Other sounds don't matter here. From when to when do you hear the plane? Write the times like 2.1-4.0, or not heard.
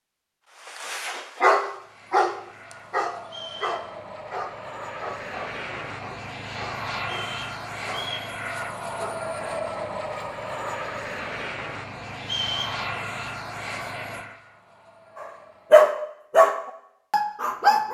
1.6-15.9.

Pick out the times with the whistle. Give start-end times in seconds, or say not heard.
3.2-3.9, 7.0-8.3, 12.2-12.8.